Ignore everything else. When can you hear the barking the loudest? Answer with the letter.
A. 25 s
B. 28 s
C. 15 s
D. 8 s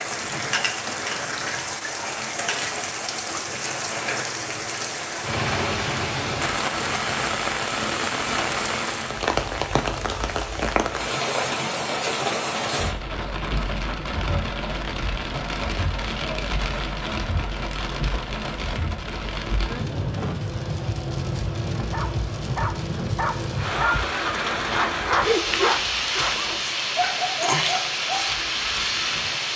A.